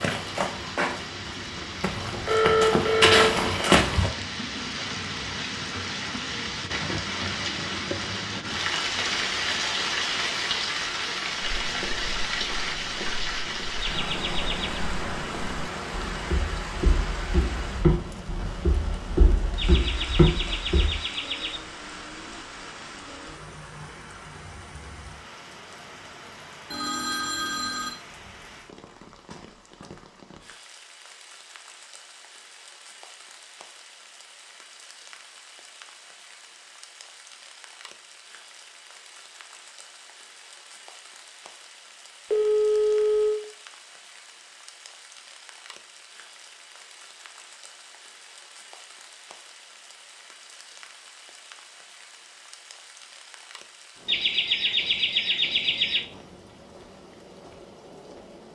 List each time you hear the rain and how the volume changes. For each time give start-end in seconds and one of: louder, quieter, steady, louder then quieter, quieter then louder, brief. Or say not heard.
0.0-58.5 quieter.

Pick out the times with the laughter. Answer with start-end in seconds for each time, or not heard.
13.8-14.8, 19.6-21.6, 54.0-56.0.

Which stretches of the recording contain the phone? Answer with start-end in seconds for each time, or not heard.
1.9-3.5, 26.7-27.9, 42.3-43.4.